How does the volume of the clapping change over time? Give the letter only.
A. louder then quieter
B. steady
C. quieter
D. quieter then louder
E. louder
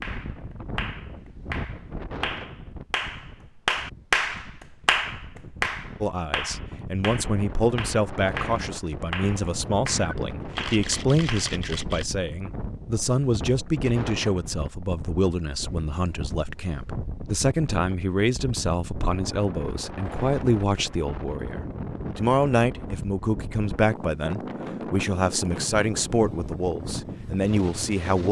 A.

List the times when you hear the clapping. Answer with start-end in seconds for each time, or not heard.
0.0-11.6.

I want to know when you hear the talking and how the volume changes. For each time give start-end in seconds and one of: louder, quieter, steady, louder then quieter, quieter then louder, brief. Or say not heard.
6.0-28.2 steady.